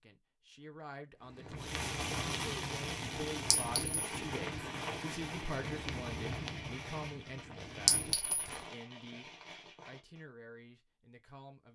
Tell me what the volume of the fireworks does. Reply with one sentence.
The volume of the fireworks goes down.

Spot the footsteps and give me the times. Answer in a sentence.
The footsteps can be heard from 1.2 to 8.8 s.